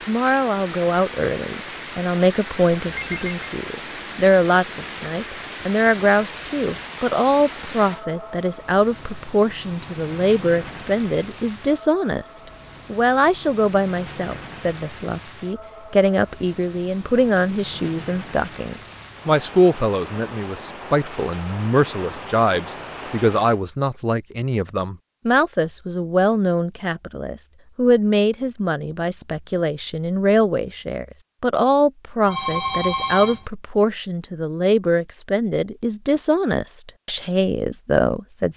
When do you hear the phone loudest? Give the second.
33 s.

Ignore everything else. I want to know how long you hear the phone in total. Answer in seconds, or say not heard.
2 s.